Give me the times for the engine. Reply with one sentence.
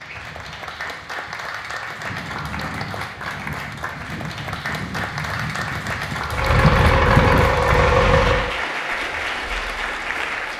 You can hear the engine from 6.2 to 8.6 s.